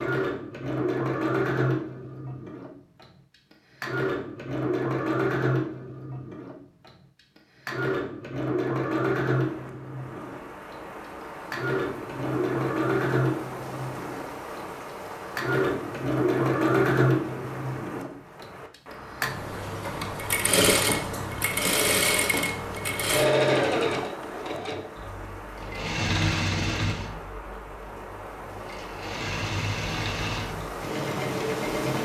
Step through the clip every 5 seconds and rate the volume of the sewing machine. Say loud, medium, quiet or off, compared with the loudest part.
loud, loud, loud, loud, loud, medium, medium.